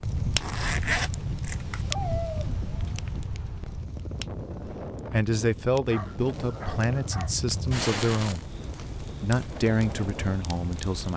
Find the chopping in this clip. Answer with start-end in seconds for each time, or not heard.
not heard.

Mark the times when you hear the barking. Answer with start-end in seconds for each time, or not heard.
1.9-3.0, 5.9-7.3.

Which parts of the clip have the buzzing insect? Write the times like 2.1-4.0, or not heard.
not heard.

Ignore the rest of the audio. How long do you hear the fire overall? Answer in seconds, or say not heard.
11 s.